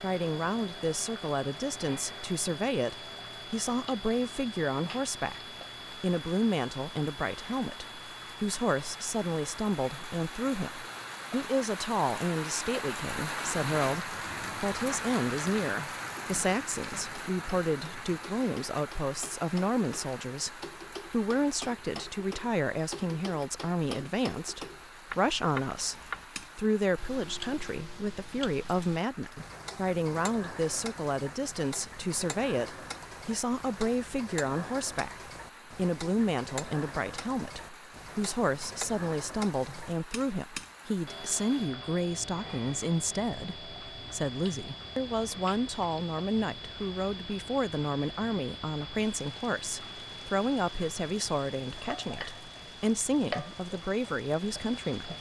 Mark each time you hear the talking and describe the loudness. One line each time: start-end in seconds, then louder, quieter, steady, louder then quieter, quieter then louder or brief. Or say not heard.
0.0-55.1 steady.